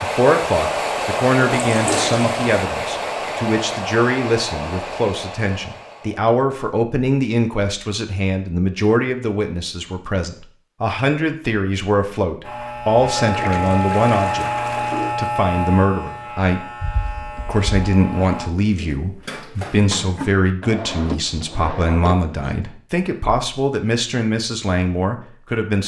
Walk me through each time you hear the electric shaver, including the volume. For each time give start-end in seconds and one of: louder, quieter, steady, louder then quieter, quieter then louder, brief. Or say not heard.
12.4-18.4 quieter.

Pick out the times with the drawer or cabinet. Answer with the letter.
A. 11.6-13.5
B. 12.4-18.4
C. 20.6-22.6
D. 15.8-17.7
C.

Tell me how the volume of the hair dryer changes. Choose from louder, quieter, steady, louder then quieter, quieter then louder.
quieter.